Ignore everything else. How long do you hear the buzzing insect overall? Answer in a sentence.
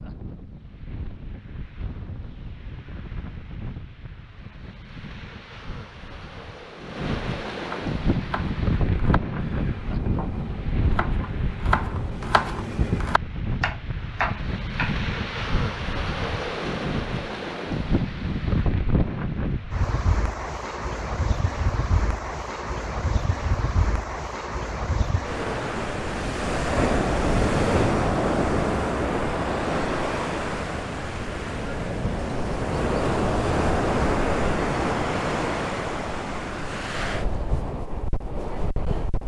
You can't hear the buzzing insect here.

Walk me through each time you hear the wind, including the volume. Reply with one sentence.
The wind can be heard from 0.0 to 39.2 s, getting louder.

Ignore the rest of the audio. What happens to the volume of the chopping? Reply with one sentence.
The volume of the chopping goes up.